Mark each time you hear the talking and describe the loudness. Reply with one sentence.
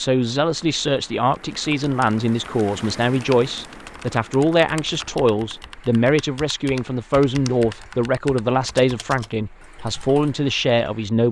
You can hear the talking from 0.0 to 11.2 s, at a steady volume.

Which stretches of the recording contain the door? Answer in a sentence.
The door can't be heard in this clip.